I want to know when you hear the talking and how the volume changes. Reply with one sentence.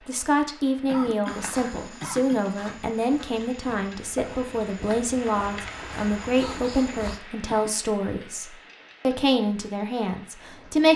The talking can be heard from 0.1 to 10.9 s, at a steady volume.